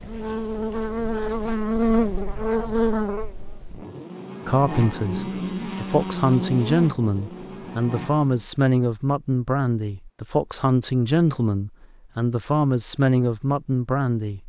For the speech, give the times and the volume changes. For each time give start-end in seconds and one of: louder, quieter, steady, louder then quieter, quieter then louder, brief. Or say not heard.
4.5-14.4 steady.